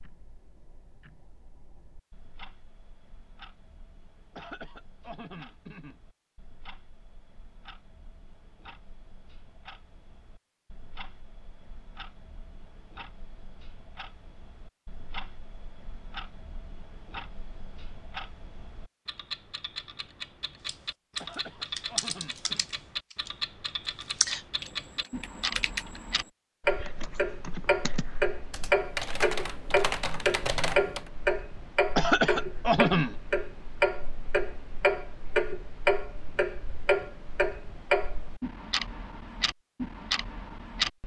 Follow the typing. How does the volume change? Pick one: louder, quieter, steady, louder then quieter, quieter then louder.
quieter then louder.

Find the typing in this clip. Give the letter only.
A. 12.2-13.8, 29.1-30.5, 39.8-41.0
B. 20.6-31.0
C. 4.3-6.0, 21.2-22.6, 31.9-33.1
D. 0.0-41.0
B.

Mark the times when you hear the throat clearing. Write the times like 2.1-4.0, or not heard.
4.3-6.0, 21.2-22.6, 31.9-33.1.